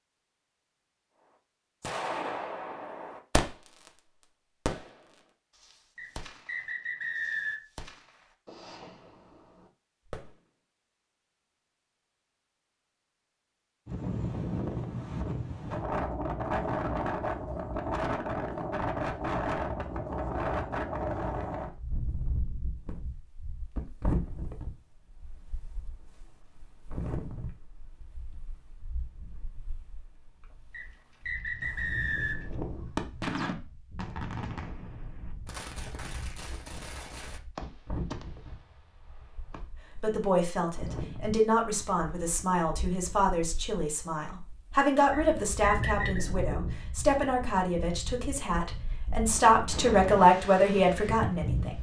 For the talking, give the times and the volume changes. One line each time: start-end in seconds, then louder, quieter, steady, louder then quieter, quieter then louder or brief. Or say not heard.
40.0-51.7 louder.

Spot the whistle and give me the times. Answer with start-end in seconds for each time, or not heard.
6.0-7.6, 30.7-32.5, 45.1-46.2.